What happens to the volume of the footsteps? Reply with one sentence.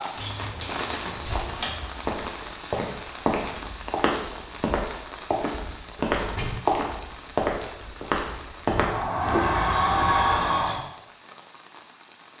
The volume of the footsteps goes up.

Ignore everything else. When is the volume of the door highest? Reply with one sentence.
The volume of the door peaks at 10 seconds.